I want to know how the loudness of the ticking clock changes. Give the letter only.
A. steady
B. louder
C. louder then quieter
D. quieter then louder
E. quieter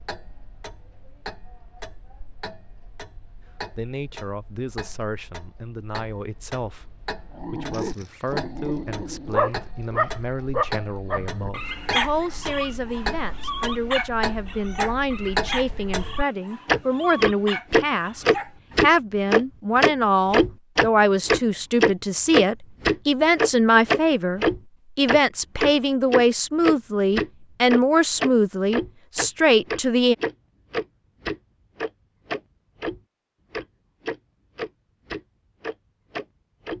C.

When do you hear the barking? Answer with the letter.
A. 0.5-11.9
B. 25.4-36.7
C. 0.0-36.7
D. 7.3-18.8
D.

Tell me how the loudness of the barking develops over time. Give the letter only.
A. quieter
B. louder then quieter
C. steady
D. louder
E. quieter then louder
A.